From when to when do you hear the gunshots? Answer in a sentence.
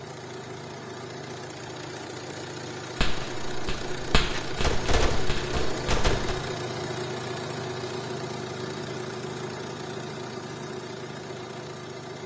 You can hear the gunshots from 3.0 to 6.3 s.